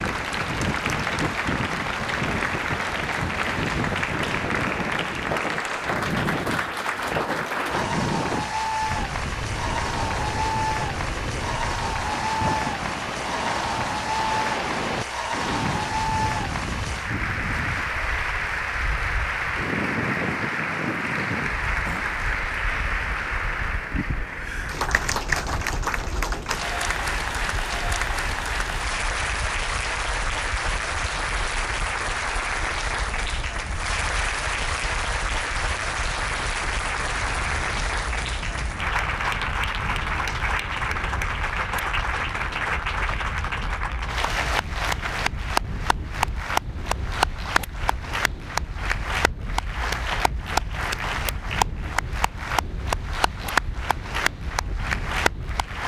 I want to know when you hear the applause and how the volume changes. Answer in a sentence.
You can hear the applause from 0.0 to 55.8 s, at a steady volume.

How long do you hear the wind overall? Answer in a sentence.
You can hear the wind for 56 seconds altogether.